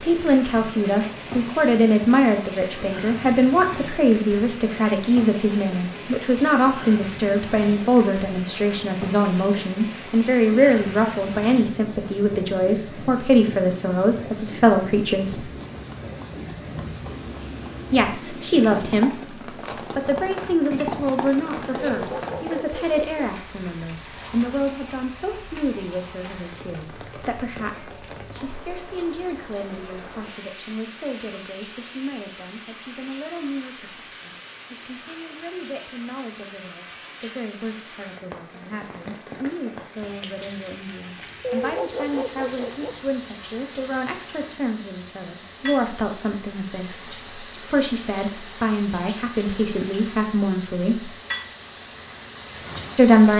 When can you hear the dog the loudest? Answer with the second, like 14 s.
42 s.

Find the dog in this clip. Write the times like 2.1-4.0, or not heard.
21.9-23.3, 41.4-43.0.